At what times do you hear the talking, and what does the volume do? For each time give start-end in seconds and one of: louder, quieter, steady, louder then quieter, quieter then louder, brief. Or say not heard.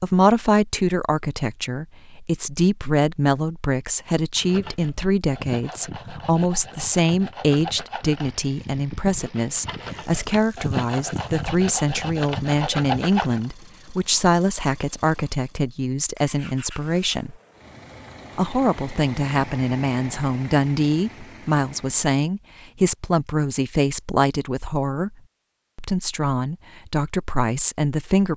0.0-17.4 steady
18.4-25.1 steady
25.8-28.3 brief.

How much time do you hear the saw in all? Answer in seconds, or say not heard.
9 s.